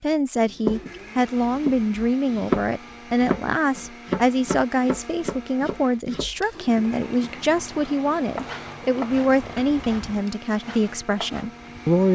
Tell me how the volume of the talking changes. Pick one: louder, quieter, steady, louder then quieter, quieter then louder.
steady.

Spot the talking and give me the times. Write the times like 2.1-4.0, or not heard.
0.0-12.1.